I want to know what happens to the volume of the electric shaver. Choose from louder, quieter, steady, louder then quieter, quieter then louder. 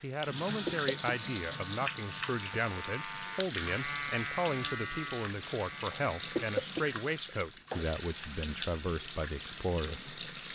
louder then quieter.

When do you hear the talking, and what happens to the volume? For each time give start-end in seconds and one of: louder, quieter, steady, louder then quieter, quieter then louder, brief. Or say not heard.
0.0-10.1 steady.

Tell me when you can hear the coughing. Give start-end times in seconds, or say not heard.
0.7-1.2, 6.3-7.9.